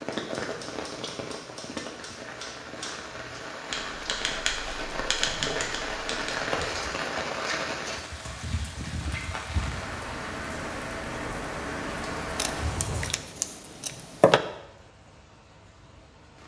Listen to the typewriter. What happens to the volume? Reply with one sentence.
The volume of the typewriter goes up.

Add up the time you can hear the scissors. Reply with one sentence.
You can hear the scissors for 2 seconds altogether.